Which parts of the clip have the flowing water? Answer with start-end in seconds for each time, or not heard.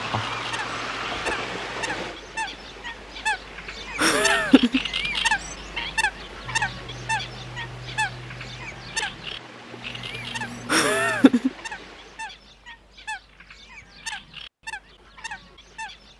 0.0-12.4.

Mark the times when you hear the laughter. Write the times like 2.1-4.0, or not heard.
4.0-4.8, 10.7-11.5.